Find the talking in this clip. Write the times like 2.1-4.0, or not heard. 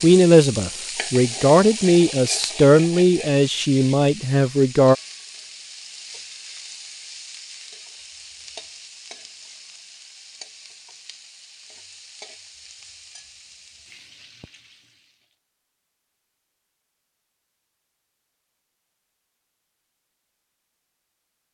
0.0-5.0.